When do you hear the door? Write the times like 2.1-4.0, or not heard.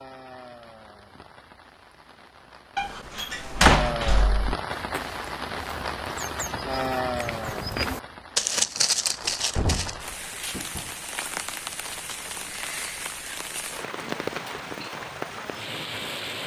2.8-4.5, 9.2-10.9.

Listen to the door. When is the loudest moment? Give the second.
4 s.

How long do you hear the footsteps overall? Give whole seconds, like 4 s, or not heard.
5 s.